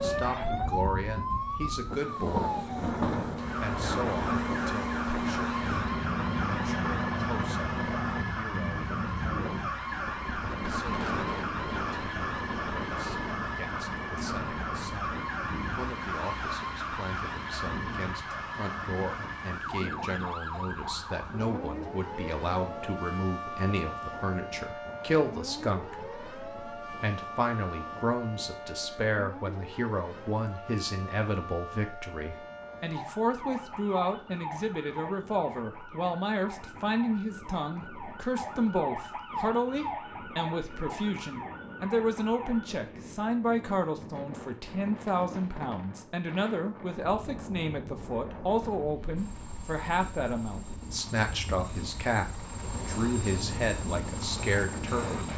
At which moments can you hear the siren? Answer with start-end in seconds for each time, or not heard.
0.0-42.7.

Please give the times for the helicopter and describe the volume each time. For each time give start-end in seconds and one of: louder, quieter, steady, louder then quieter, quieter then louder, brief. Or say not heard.
0.0-8.2 louder
49.1-55.3 louder.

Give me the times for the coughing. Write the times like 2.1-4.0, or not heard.
not heard.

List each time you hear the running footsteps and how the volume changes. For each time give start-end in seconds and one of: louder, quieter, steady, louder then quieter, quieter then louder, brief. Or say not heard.
not heard.